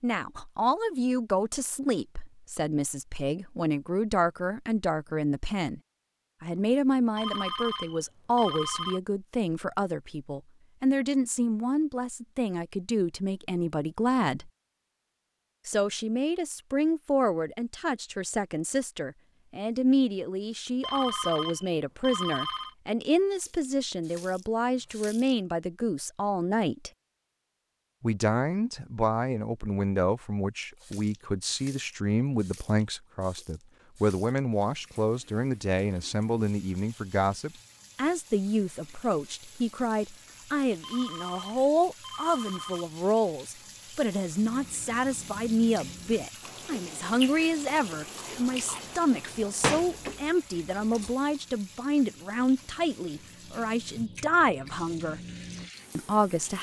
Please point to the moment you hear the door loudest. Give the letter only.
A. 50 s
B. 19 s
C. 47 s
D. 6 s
A.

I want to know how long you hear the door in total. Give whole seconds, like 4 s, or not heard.
2 s.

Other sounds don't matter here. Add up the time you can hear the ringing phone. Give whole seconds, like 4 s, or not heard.
6 s.